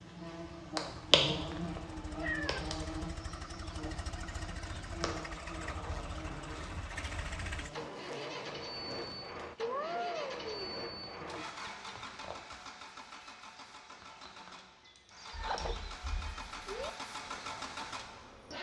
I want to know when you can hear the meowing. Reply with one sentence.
The meowing can be heard from 1.5 to 2.6 s, from 9.6 to 10.8 s and from 15.3 to 16.9 s.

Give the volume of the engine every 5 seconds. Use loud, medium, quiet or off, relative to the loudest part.
medium, loud, loud, loud.